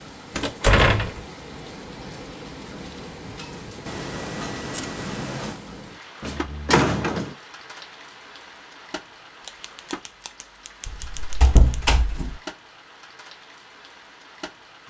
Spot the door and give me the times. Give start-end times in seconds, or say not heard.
0.3-1.2, 6.2-7.3, 10.8-12.3.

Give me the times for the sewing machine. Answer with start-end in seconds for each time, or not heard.
not heard.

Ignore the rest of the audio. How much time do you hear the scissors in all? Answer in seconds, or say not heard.
4 s.